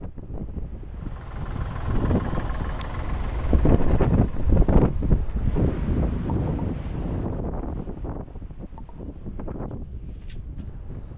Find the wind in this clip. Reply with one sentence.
The wind can be heard from 0.0 to 11.1 s.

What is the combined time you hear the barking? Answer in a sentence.
The barking can't be heard in this clip.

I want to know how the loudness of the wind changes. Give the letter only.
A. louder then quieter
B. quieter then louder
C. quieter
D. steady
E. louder
A.